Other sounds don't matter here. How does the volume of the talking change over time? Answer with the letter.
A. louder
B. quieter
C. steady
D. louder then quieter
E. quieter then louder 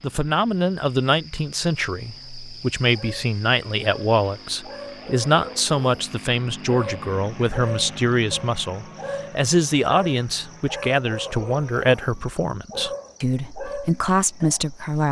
C.